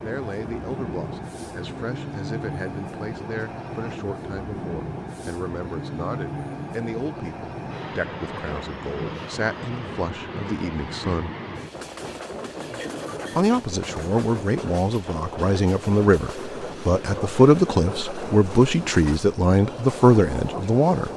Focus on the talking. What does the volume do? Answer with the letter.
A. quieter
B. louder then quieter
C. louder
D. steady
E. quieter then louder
C.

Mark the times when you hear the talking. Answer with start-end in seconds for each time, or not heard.
0.0-11.3, 13.3-21.1.